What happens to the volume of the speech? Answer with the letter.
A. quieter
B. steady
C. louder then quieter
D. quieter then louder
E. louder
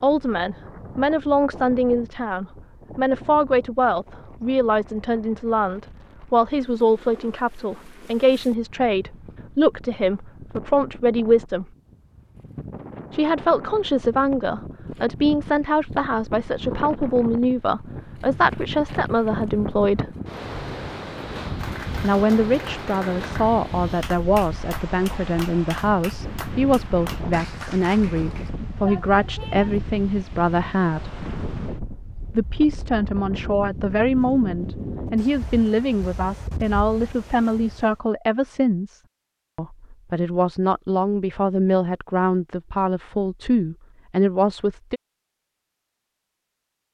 B.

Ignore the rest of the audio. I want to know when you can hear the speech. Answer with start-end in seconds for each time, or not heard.
0.0-11.7, 13.1-20.1, 22.0-31.2, 32.4-45.0.